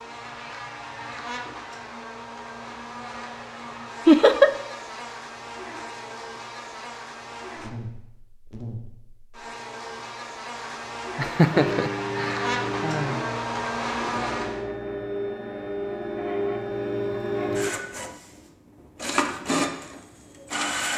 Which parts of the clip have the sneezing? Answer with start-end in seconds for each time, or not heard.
not heard.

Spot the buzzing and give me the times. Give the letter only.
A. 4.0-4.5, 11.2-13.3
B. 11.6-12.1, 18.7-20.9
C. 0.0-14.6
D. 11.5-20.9
C.